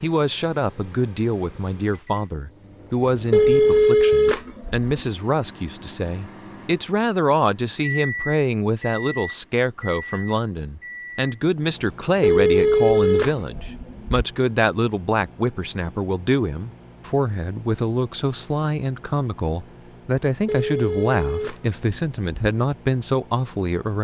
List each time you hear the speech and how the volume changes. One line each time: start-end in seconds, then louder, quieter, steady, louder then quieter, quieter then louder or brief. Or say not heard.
0.0-24.0 steady.